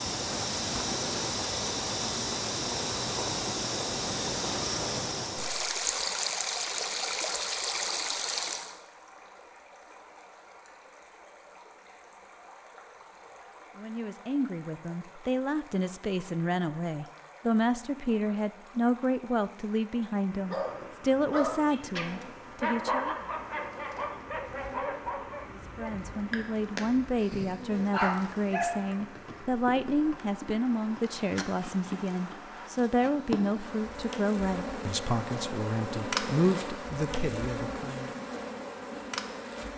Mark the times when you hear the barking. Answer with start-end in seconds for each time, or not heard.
20.4-29.1.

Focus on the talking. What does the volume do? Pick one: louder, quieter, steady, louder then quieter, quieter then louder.
steady.